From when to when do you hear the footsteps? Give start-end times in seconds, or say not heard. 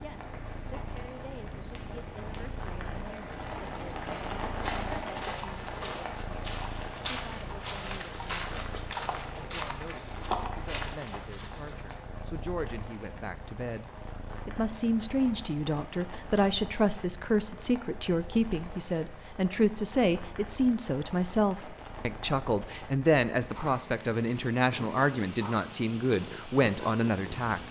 0.0-11.9.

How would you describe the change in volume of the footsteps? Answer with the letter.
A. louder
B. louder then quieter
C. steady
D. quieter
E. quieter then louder
A.